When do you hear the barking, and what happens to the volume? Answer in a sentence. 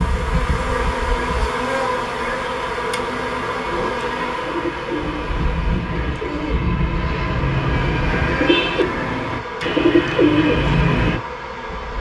You can't hear the barking here.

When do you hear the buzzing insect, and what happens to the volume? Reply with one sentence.
You can hear the buzzing insect from 0.0 to 11.9 s, getting quieter.